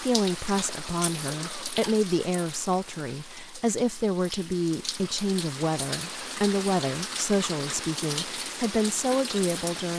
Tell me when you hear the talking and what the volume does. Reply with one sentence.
The talking can be heard from 0.0 to 9.9 s, at a steady volume.